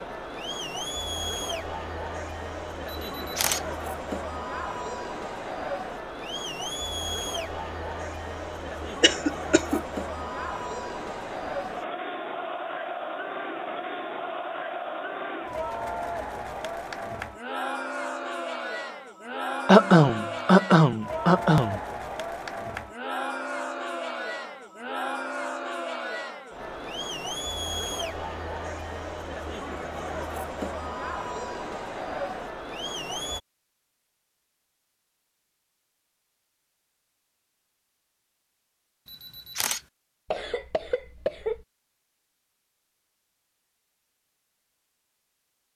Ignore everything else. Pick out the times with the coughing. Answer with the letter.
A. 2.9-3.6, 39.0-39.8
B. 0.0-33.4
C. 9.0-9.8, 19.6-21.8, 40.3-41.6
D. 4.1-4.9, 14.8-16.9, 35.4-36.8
C.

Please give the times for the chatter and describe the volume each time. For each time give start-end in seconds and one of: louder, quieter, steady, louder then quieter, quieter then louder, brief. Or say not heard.
0.0-33.4 steady.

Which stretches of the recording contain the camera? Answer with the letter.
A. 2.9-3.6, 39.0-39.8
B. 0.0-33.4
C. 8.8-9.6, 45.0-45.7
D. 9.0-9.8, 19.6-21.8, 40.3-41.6
A.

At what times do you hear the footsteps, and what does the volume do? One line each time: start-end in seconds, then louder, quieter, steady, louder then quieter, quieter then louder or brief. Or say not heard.
not heard.